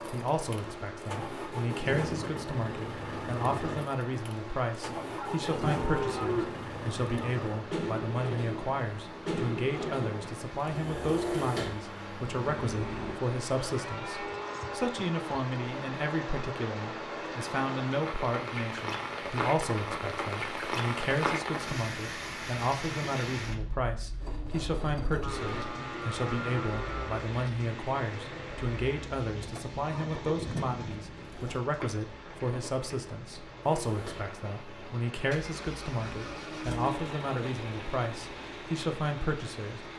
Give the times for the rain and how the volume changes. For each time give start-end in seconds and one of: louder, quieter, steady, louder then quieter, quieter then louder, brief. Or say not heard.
0.0-39.9 louder then quieter.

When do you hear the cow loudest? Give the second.
6 s.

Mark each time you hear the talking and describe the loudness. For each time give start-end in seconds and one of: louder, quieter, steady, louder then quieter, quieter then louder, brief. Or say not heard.
0.1-39.9 steady.